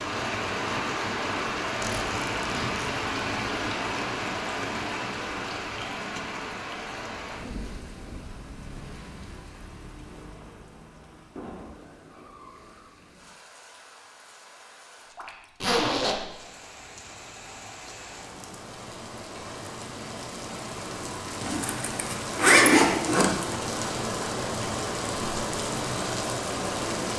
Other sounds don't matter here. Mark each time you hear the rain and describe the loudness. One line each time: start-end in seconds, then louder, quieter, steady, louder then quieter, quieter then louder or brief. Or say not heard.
0.0-27.1 quieter then louder.